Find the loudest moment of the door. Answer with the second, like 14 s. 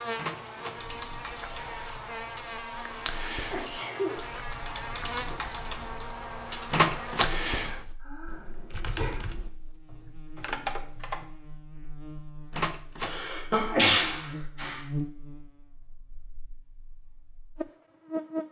7 s.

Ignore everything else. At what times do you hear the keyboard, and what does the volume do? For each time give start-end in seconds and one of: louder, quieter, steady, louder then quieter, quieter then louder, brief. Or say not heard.
0.8-11.2 louder.